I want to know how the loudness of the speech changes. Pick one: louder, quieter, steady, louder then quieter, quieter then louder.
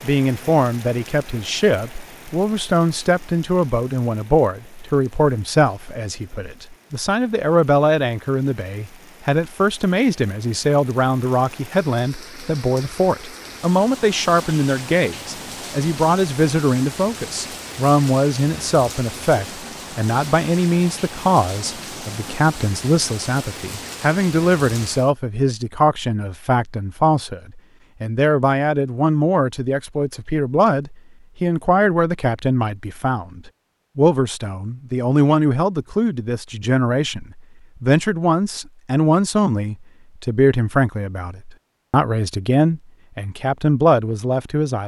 steady.